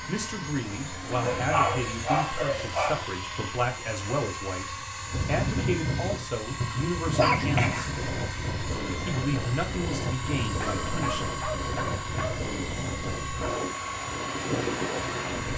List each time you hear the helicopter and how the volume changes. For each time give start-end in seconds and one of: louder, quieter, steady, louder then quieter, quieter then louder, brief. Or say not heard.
0.0-15.5 steady.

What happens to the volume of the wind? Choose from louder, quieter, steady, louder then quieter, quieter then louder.
steady.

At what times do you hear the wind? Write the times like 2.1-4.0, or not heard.
5.0-15.5.